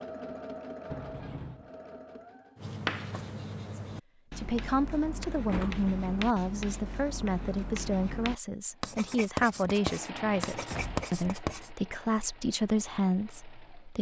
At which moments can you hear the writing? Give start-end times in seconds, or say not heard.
2.5-11.7.